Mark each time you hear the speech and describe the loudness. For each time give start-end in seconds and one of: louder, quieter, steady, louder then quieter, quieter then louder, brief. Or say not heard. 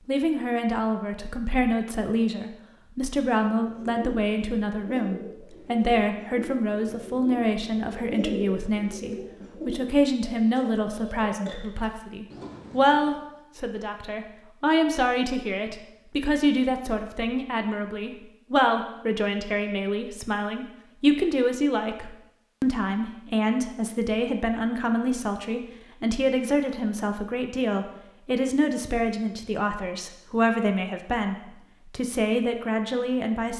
0.1-33.5 steady.